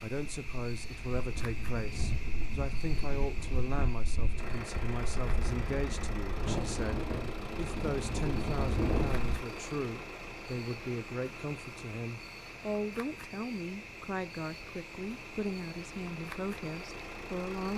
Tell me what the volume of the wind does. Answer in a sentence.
The loudness of the wind goes up.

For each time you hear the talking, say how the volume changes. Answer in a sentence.
The talking can be heard from 0.0 to 17.7 s, at a steady volume.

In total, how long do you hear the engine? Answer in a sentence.
The engine can be heard for 13 seconds in total.